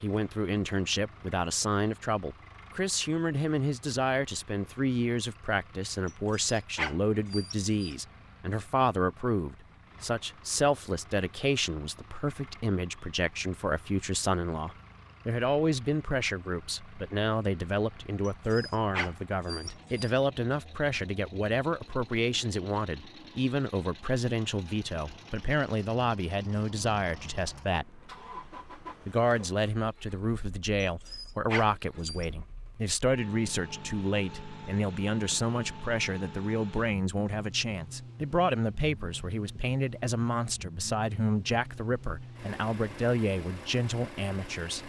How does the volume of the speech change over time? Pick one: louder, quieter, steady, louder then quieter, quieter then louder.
steady.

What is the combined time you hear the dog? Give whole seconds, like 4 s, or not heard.
5 s.